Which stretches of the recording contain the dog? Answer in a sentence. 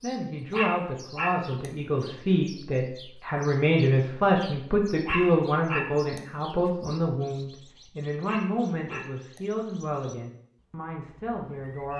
You can hear the dog from 0.5 to 1.7 s, from 5.0 to 6.2 s and from 8.2 to 9.4 s.